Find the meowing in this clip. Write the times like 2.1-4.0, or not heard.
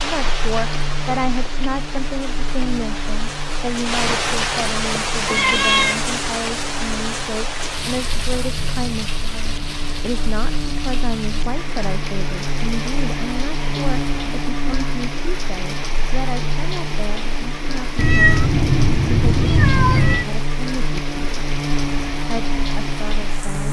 5.2-6.0, 17.9-20.2.